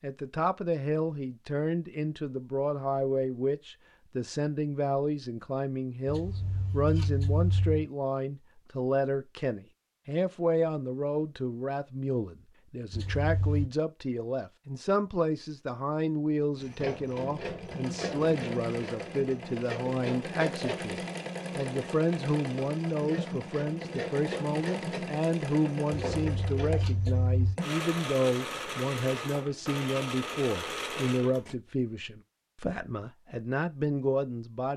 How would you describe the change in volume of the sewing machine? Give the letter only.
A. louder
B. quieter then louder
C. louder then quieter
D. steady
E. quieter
D.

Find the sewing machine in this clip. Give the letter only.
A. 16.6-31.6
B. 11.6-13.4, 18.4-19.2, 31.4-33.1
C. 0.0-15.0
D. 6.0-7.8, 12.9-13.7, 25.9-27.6
A.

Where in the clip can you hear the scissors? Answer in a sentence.
The scissors can be heard from 6.0 to 7.8 s, from 12.9 to 13.7 s and from 25.9 to 27.6 s.